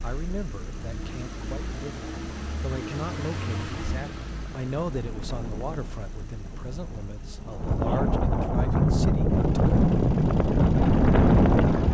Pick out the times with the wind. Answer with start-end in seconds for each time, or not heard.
0.0-11.8.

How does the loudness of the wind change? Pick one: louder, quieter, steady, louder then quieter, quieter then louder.
louder.